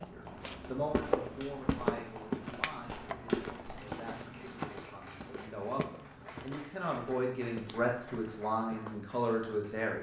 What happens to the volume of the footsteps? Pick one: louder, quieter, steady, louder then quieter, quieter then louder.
quieter.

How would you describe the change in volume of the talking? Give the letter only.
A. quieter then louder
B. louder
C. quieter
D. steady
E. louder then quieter
A.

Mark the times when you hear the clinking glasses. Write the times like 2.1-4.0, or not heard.
2.6-3.1, 5.8-6.3.